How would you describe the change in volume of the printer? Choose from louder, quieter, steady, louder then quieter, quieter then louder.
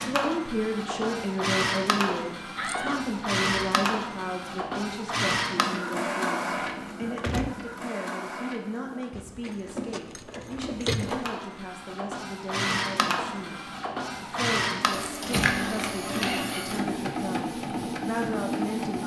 quieter then louder.